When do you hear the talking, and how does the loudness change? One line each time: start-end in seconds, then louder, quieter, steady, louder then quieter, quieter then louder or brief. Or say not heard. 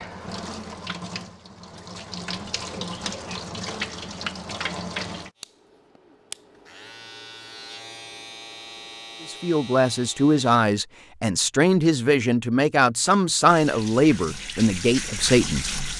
9.2-15.9 steady.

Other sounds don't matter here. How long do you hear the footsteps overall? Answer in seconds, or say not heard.
not heard.